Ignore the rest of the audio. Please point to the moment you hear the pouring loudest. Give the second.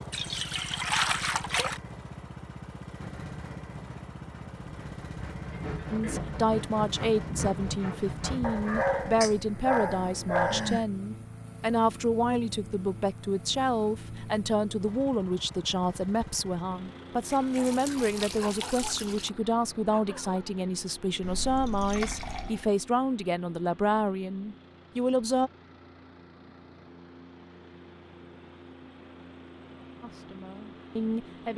1 s.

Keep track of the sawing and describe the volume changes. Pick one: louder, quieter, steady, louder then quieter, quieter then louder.
louder.